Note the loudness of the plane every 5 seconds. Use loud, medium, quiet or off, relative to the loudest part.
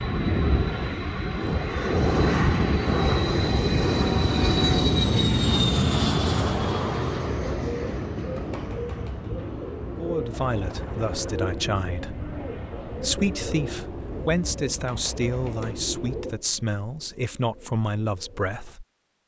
loud, loud, quiet, off.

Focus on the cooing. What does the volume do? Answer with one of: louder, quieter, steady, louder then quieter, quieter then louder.
quieter.